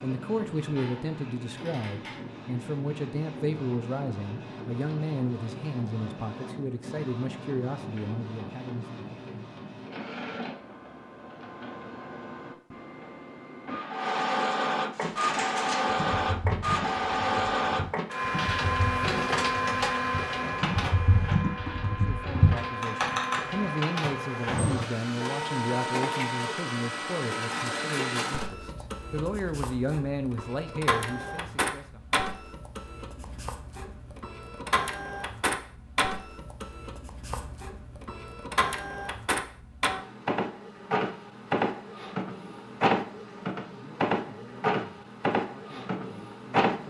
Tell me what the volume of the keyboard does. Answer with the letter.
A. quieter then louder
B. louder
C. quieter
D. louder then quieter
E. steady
A.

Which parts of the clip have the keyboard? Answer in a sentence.
You can hear the keyboard from 14.9 to 23.4 s.